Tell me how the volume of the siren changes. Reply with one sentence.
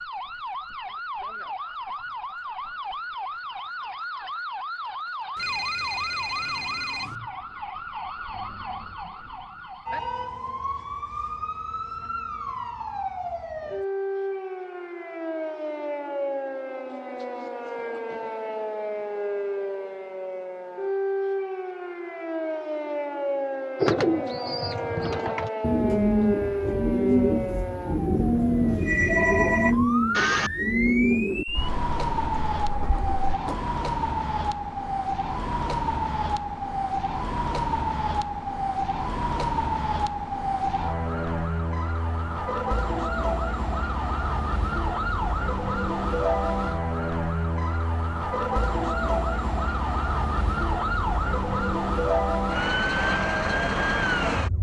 The volume of the siren goes up.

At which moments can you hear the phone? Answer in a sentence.
You can hear the phone from 5.3 to 7.2 s and from 28.7 to 30.5 s.